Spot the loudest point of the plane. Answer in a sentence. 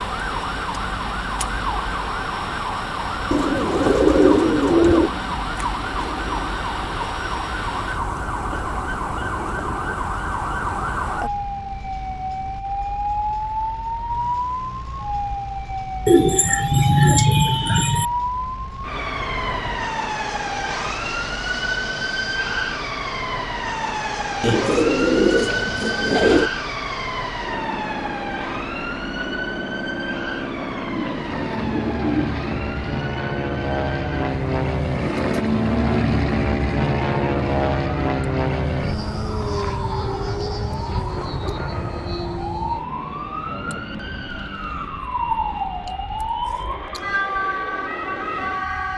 The loudest moment of the plane is at 36 seconds.